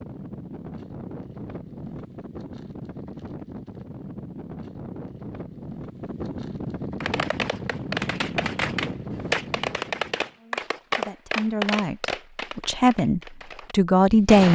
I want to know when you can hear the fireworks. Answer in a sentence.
The fireworks can be heard from 7.0 to 14.5 s.